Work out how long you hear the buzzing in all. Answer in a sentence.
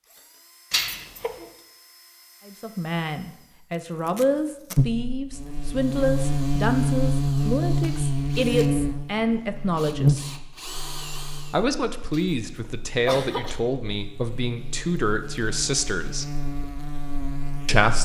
The buzzing can be heard for 13 seconds in total.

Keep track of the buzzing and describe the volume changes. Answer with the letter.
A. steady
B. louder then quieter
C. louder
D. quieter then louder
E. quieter
D.